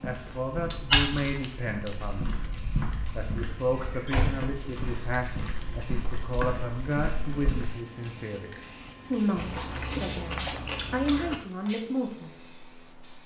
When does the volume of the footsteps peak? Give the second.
1 s.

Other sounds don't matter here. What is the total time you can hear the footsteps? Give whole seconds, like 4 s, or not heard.
8 s.